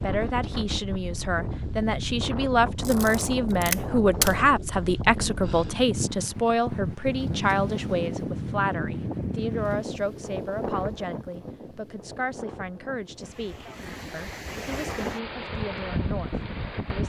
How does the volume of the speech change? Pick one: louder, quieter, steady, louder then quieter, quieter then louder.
quieter.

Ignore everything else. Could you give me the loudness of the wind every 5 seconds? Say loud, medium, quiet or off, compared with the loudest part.
loud, loud, medium, loud.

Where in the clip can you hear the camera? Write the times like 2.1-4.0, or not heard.
2.8-4.3.